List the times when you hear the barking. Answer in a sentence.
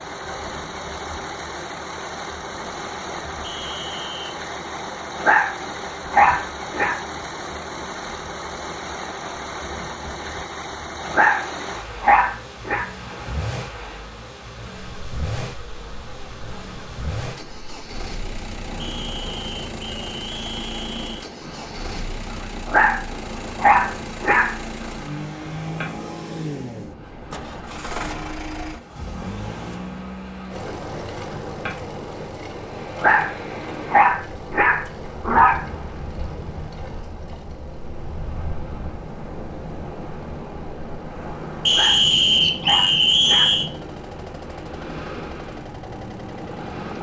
The barking can be heard from 5.2 to 7.0 s, from 11.1 to 12.8 s, from 22.6 to 24.6 s, from 33.0 to 35.6 s and from 41.7 to 43.5 s.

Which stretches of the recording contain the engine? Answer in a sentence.
You can hear the engine from 0.0 to 46.9 s.